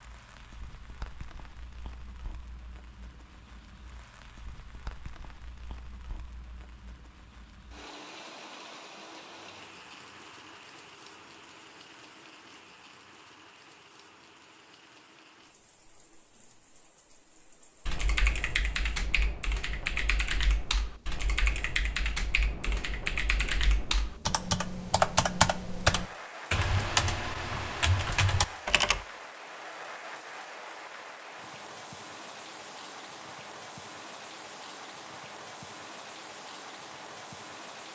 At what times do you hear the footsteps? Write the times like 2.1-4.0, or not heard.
not heard.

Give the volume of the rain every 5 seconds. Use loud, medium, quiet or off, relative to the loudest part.
medium, medium, medium, quiet, medium, loud, loud, loud.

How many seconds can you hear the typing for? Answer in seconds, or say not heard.
11 s.